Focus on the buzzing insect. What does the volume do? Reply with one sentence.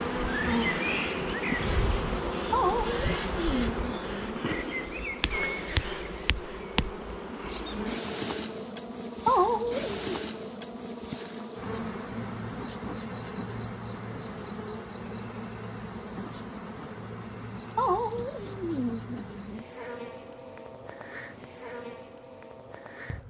The volume of the buzzing insect goes down.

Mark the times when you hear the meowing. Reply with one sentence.
The meowing can be heard from 2.5 to 4.2 s, from 9.2 to 10.2 s and from 17.8 to 19.6 s.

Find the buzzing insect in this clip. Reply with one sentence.
The buzzing insect can be heard from 0.0 to 23.2 s.